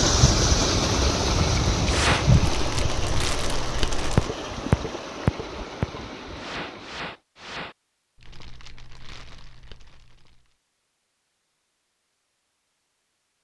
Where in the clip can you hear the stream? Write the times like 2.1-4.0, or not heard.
0.0-7.1.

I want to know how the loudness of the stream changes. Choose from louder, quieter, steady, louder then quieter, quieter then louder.
quieter.